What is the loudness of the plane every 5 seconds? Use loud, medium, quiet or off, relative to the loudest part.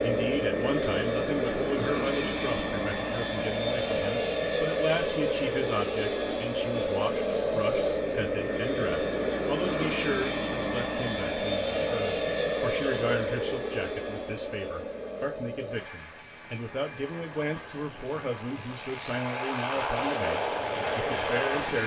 loud, loud, loud, medium, loud.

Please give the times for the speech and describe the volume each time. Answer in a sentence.
The speech can be heard from 0.0 to 21.8 s, at a steady volume.